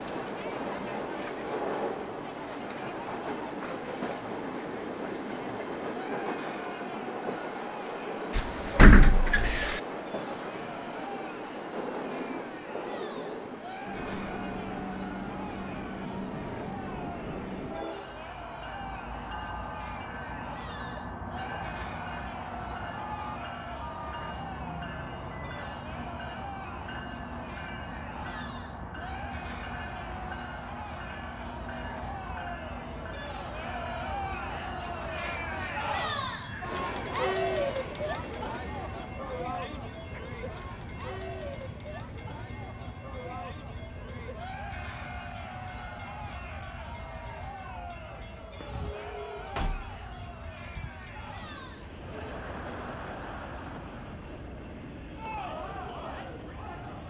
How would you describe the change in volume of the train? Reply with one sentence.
The loudness of the train goes down.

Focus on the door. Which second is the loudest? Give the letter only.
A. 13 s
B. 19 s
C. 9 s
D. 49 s
C.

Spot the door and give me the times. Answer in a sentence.
You can hear the door from 8.3 to 9.8 s and from 48.1 to 50.0 s.